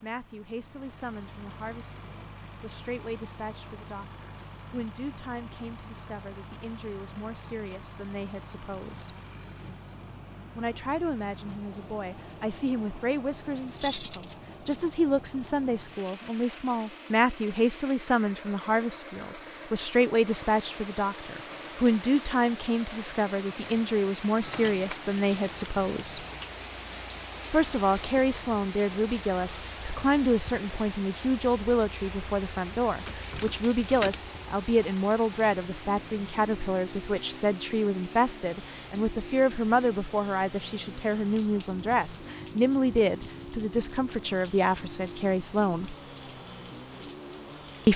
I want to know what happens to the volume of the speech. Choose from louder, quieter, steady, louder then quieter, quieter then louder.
louder.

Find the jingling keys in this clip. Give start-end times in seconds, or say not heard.
13.8-14.3, 24.4-26.5, 33.0-34.2.